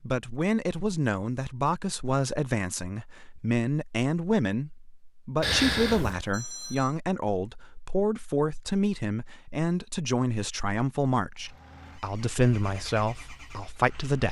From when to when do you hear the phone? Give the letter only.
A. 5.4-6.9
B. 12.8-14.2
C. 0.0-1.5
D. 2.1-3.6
A.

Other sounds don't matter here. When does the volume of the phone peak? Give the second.
6 s.